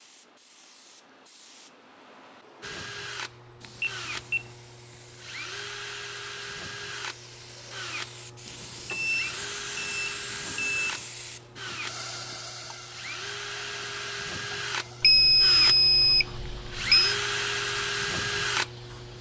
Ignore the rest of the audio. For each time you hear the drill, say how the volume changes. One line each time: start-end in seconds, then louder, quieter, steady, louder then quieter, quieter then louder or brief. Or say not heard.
2.6-19.1 louder.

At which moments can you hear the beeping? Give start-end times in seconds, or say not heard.
3.6-4.5, 8.4-11.0, 15.0-17.1.